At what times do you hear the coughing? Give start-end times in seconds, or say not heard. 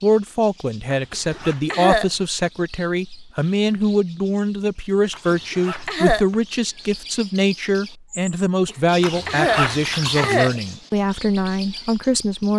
1.1-2.1, 5.3-6.2, 8.7-10.6.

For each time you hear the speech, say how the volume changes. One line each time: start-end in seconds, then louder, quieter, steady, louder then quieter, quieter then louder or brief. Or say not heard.
0.0-12.5 steady.